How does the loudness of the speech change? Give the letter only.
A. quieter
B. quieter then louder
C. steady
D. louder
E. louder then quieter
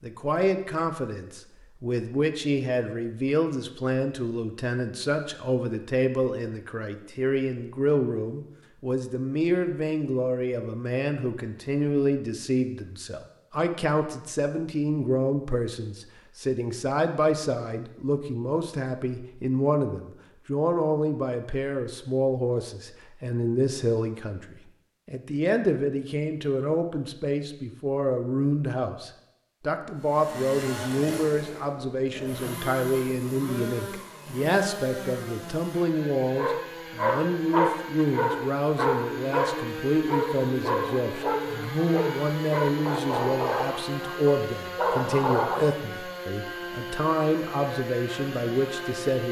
C.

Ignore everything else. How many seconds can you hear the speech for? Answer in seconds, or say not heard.
49 s.